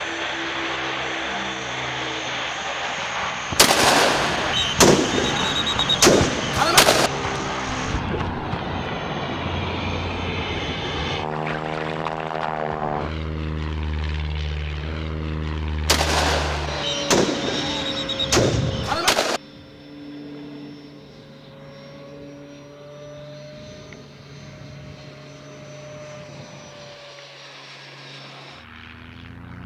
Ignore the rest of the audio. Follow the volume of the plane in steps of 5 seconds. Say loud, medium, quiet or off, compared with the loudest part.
loud, loud, loud, loud, quiet, quiet.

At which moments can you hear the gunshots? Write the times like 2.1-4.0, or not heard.
3.5-7.1, 15.8-19.4.